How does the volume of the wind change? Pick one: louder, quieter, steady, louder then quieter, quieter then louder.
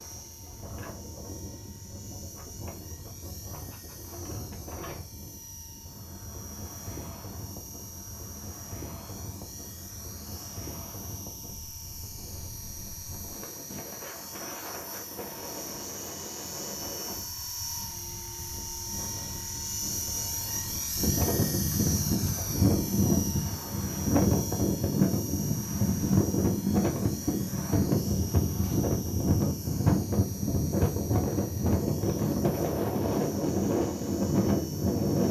louder.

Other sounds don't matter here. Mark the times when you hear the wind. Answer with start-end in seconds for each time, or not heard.
0.0-35.2.